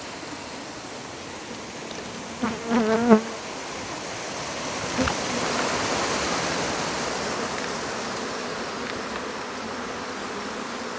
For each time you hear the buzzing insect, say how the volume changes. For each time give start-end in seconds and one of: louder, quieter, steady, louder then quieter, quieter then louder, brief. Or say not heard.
0.0-10.9 louder then quieter.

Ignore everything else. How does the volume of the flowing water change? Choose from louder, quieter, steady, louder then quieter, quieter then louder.
louder then quieter.